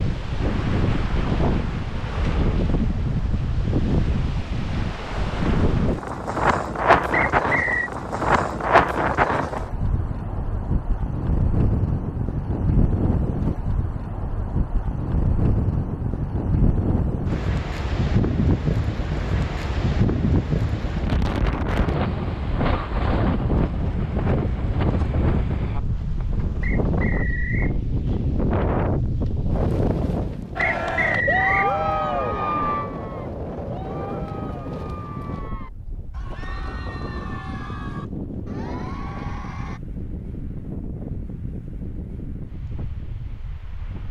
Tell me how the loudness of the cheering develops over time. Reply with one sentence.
The volume of the cheering goes down.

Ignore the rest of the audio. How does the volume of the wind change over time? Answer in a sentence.
The loudness of the wind goes down.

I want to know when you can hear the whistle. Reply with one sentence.
You can hear the whistle from 7.1 to 7.9 s, from 26.6 to 27.8 s and from 30.8 to 31.7 s.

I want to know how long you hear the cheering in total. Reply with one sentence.
You can hear the cheering for 9 seconds altogether.